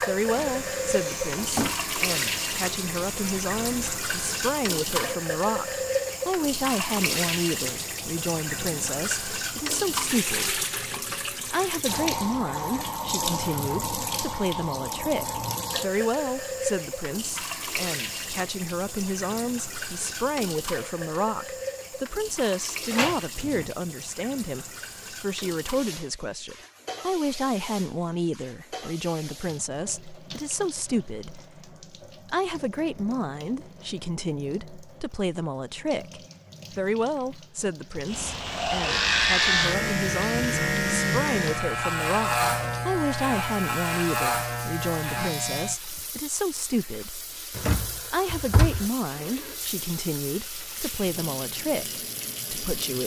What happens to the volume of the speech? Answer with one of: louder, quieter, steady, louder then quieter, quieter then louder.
steady.